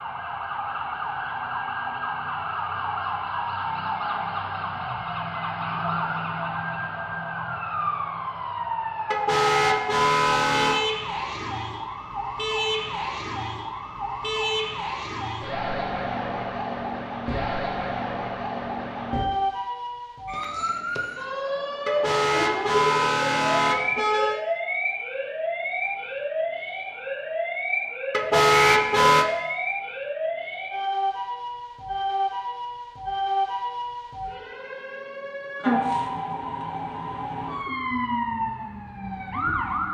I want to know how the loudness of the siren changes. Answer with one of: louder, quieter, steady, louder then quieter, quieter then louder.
steady.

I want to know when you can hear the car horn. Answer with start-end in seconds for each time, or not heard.
9.1-10.8, 21.9-24.4, 28.1-29.2.